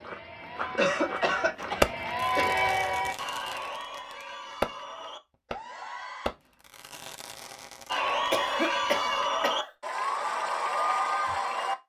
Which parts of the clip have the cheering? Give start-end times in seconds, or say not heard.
0.0-6.3, 7.8-11.8.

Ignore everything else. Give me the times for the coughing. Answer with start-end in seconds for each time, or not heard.
0.8-2.5, 8.3-9.7.